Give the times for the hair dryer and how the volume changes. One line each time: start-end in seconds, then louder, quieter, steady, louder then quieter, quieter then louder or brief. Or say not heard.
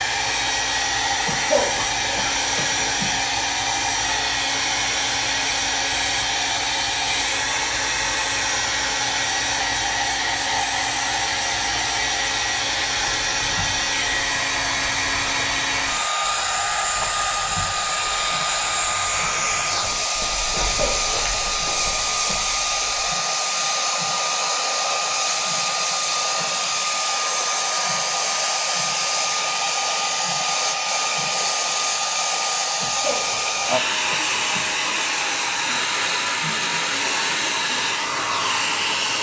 0.0-39.1 steady.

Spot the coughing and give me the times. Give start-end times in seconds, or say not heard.
1.2-3.1, 20.6-22.4, 32.8-34.7.